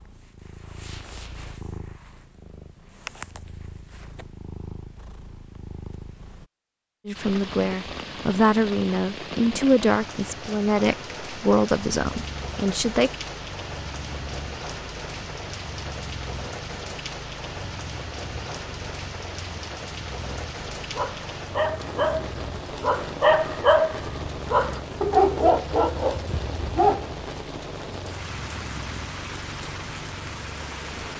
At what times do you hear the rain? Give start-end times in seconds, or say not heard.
7.1-31.1.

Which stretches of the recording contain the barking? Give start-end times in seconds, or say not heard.
20.8-27.2.